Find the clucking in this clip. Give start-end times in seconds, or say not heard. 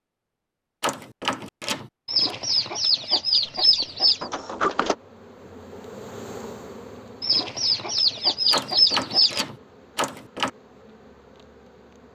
2.0-4.3, 7.2-9.4.